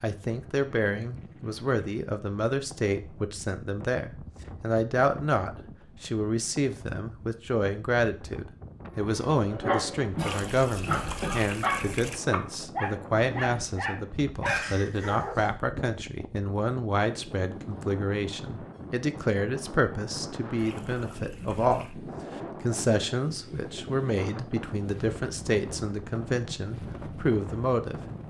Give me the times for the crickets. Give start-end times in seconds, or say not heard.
not heard.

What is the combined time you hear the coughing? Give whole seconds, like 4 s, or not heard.
2 s.